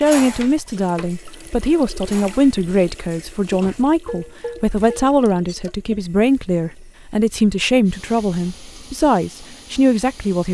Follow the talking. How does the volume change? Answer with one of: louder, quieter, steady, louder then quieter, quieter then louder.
steady.